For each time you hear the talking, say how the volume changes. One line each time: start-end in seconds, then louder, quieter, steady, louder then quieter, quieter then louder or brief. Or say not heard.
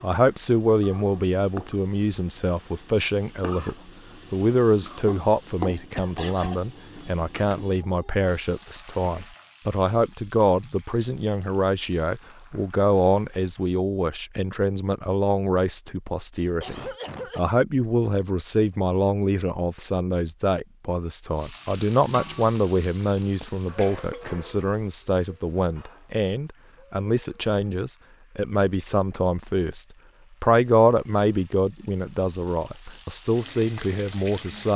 0.0-34.7 steady.